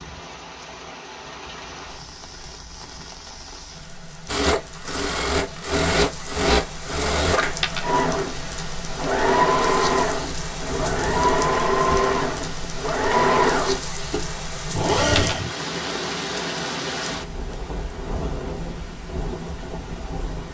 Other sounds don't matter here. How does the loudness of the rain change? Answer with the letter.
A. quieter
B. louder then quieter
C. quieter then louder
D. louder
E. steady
D.